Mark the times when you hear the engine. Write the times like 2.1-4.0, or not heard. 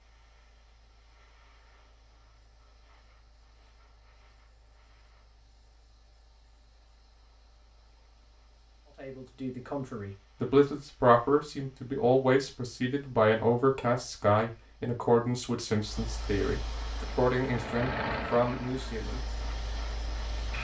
16.8-20.5.